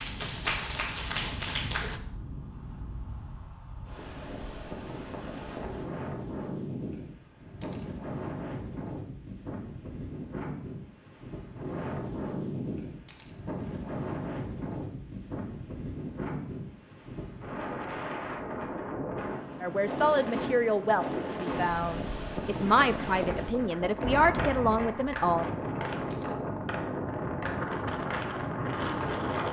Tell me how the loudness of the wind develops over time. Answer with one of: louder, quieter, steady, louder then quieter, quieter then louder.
louder.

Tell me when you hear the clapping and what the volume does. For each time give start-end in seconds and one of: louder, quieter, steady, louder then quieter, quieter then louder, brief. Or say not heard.
0.0-2.0 brief
22.8-29.4 louder.